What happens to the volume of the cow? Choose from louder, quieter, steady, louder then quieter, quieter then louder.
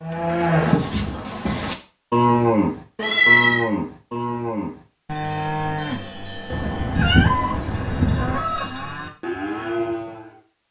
quieter then louder.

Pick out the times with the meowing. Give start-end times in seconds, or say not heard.
3.0-3.6, 6.5-8.4.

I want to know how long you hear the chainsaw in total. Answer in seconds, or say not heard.
not heard.